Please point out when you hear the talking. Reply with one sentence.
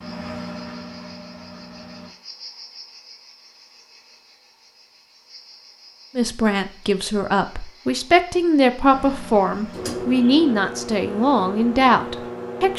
You can hear the talking from 6.2 to 12.7 s.